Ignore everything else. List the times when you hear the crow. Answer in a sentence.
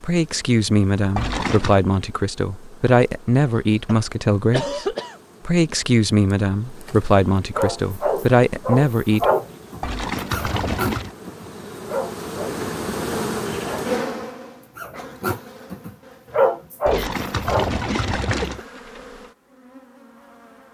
The crow can't be heard in this clip.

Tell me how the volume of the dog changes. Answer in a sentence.
The volume of the dog goes down, then up.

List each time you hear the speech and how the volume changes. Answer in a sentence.
The speech can be heard from 0.0 to 9.3 s, at a steady volume.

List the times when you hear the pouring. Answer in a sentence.
You can hear the pouring from 1.1 to 1.8 s, from 9.8 to 11.2 s and from 16.9 to 18.6 s.